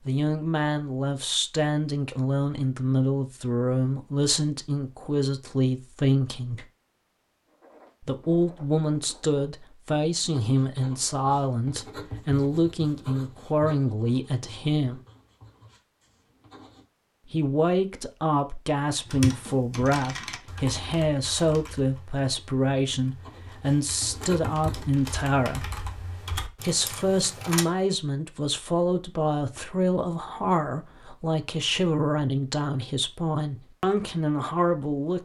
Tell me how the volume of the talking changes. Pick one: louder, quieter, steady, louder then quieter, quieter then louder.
steady.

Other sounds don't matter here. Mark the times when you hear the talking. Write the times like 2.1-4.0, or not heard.
0.1-6.7, 8.0-15.0, 17.3-25.8, 26.6-35.2.